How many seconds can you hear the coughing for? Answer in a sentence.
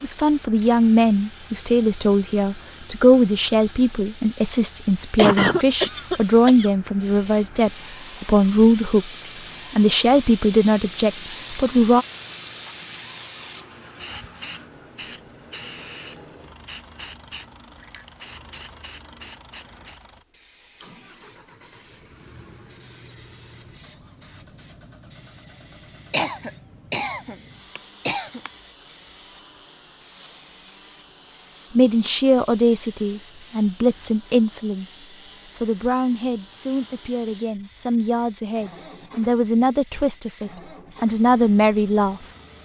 The coughing can be heard for 4 seconds in total.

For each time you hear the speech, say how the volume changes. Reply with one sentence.
The speech can be heard from 0.0 to 12.1 s, at a steady volume; and from 31.8 to 42.2 s, getting quieter then louder.